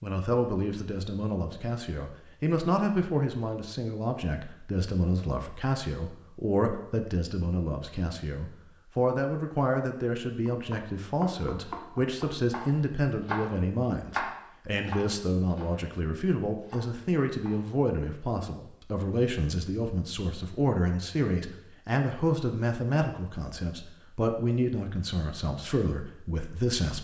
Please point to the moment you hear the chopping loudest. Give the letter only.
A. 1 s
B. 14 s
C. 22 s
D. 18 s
B.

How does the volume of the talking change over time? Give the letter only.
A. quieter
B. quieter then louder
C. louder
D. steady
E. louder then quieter
D.